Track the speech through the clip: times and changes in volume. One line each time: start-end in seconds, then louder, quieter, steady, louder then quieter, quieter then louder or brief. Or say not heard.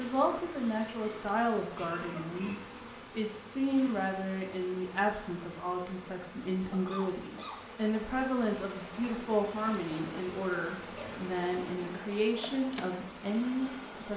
0.0-14.1 steady.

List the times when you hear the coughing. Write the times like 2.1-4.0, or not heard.
0.9-2.7, 6.7-7.6, 10.8-11.3.